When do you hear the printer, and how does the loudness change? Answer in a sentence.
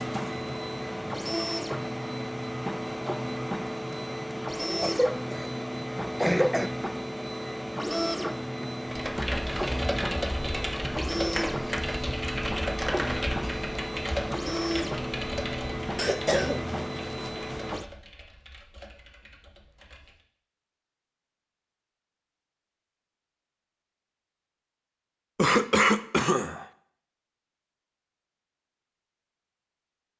The printer can be heard from 0.0 to 17.9 s, at a steady volume.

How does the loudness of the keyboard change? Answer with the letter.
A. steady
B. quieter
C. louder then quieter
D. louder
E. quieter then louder
B.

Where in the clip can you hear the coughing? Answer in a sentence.
You can hear the coughing from 4.7 to 6.7 s, from 15.9 to 17.6 s and from 25.4 to 26.6 s.